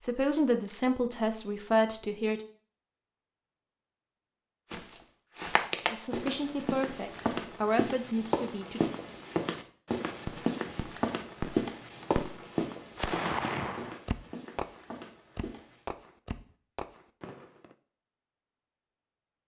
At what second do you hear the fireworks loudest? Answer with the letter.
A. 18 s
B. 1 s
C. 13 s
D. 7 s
C.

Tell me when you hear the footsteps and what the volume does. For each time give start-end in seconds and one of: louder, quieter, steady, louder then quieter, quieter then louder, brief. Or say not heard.
4.7-15.8 quieter.